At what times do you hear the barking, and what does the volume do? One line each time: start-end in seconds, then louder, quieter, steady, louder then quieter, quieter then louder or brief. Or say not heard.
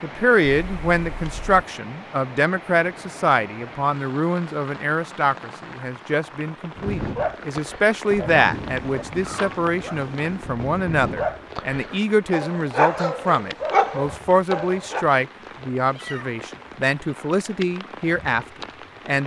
6.8-15.1 quieter then louder.